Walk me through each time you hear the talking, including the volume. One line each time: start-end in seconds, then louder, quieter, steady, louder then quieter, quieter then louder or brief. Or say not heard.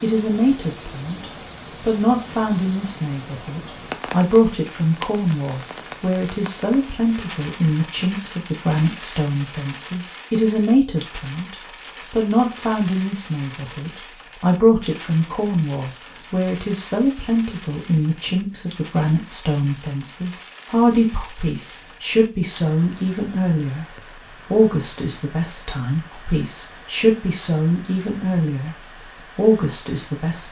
0.0-30.4 steady.